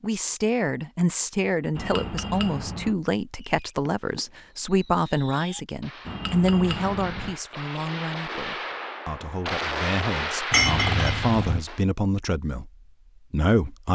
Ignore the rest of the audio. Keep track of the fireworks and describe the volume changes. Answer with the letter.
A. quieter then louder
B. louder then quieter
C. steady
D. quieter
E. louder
E.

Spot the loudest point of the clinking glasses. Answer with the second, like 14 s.
11 s.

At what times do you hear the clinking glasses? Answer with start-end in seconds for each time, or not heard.
1.8-3.0, 6.0-7.3, 10.5-11.6.